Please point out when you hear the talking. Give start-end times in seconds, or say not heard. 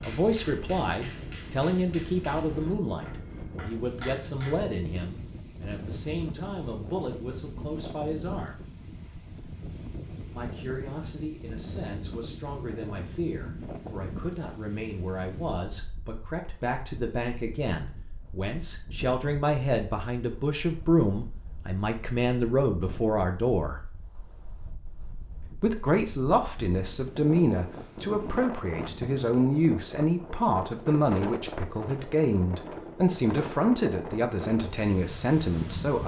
0.0-8.6, 10.3-23.8, 25.6-36.0.